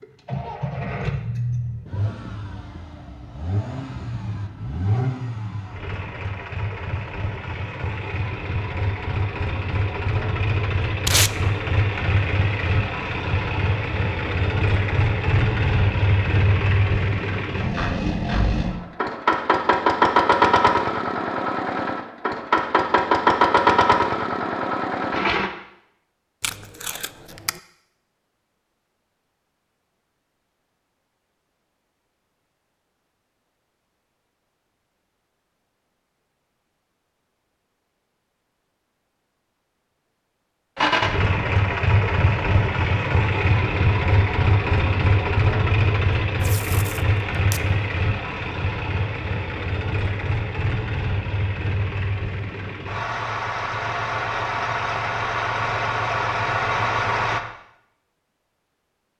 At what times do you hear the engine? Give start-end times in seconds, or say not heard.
0.0-25.5, 40.8-57.4.